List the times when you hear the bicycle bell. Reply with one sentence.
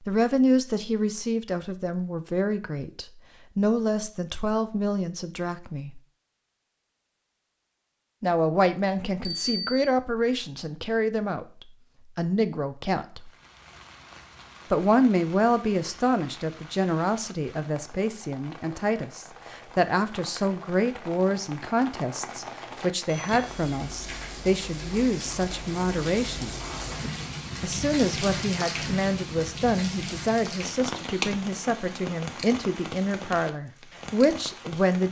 The bicycle bell can be heard from 9.2 to 9.9 s and from 23.1 to 23.6 s.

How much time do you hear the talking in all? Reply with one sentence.
You can hear the talking for 30 seconds altogether.